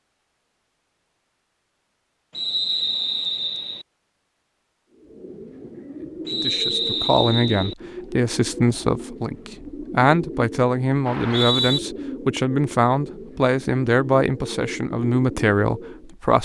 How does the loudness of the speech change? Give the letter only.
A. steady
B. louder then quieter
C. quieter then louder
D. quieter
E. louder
A.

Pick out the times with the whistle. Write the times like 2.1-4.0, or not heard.
2.3-3.9, 6.2-7.8, 11.1-11.8.